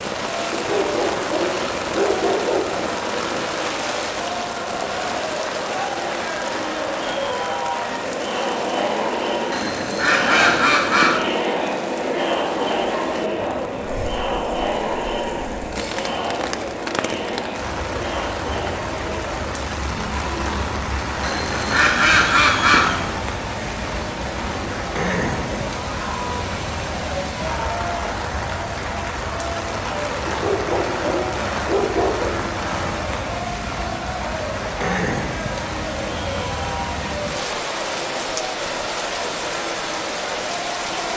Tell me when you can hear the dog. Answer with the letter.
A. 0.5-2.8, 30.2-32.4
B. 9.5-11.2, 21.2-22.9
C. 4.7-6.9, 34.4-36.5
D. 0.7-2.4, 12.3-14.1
A.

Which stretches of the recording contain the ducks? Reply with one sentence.
The ducks can be heard from 9.5 to 11.2 s and from 21.2 to 22.9 s.